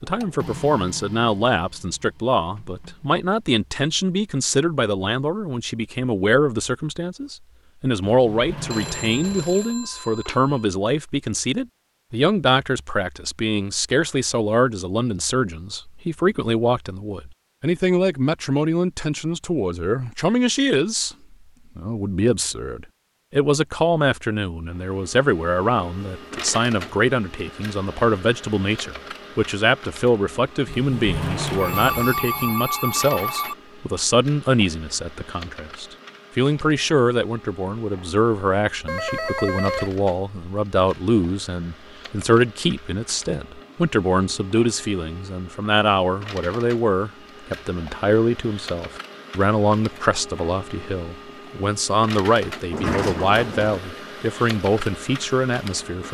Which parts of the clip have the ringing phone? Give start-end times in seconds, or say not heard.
8.7-10.7, 31.6-33.5, 38.9-40.0.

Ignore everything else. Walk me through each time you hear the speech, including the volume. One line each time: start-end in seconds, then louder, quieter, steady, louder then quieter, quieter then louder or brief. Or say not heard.
0.0-21.1 steady
21.8-56.0 steady.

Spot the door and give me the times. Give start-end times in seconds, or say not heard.
8.0-9.7, 30.6-32.5, 52.7-53.9.